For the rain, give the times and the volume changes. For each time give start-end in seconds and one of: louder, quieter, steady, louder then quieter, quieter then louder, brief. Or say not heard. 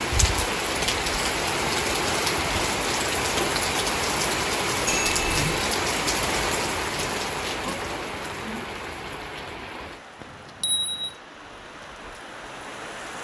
0.0-13.1 quieter.